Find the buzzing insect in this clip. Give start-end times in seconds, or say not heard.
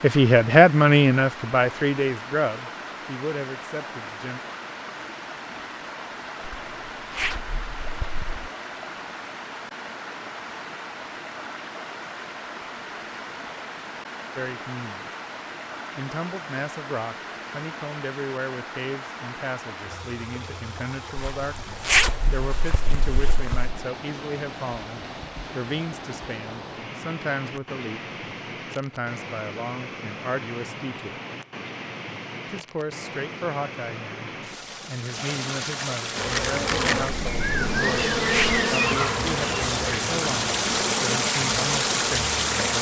36.1-42.7.